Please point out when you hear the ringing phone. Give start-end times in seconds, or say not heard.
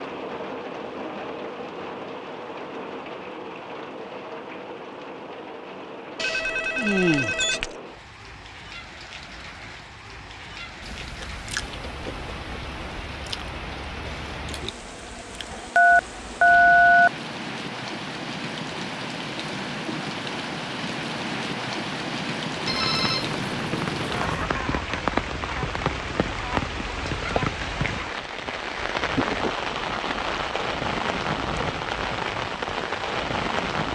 6.2-7.7, 15.8-17.1, 22.6-24.5.